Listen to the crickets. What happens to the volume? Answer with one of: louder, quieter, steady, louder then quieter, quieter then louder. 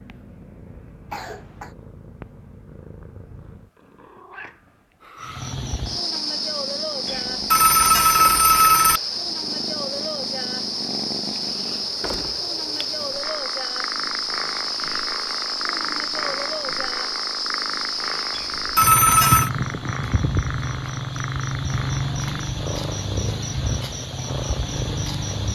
steady.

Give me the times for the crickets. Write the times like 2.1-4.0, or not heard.
5.2-25.5.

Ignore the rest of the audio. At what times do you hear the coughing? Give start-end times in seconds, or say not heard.
1.1-1.8.